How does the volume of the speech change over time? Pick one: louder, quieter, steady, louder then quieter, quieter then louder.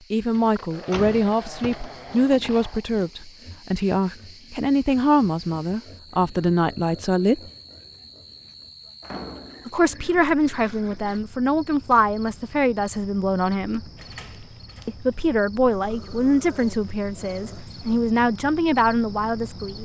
steady.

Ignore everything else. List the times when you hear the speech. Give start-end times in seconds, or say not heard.
0.1-7.4, 9.7-13.9, 14.8-19.8.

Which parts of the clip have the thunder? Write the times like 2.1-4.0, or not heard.
not heard.